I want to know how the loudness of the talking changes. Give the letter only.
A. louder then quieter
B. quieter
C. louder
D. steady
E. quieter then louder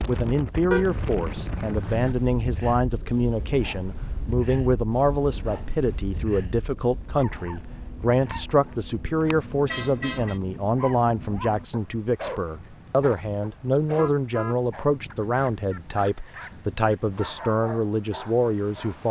D.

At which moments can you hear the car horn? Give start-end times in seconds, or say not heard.
0.7-2.1, 9.7-10.4, 13.8-14.6.